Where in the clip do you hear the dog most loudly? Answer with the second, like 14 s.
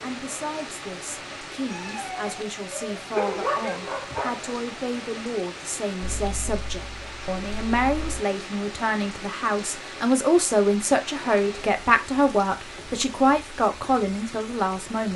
3 s.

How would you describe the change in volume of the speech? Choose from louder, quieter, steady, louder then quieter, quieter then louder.
louder.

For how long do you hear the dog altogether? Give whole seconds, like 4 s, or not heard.
3 s.